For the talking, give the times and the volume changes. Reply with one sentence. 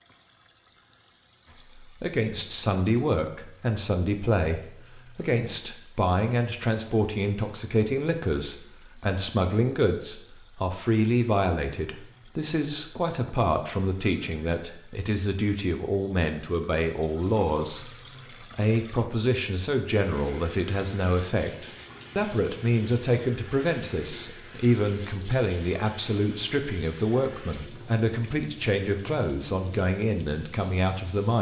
You can hear the talking from 1.8 to 31.3 s, at a steady volume.